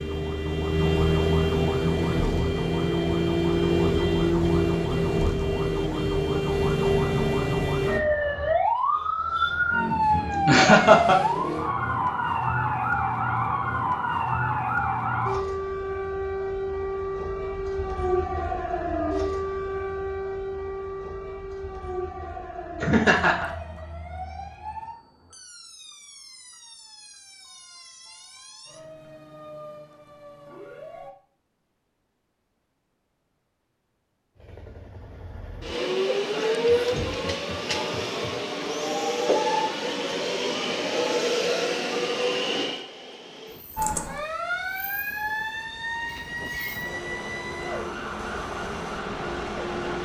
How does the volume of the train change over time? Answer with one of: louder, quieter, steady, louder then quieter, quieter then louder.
quieter then louder.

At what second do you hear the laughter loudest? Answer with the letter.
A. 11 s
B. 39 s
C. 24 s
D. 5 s
A.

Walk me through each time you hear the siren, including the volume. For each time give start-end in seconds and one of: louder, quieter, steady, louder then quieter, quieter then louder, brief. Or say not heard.
0.0-31.1 quieter
43.8-49.9 quieter.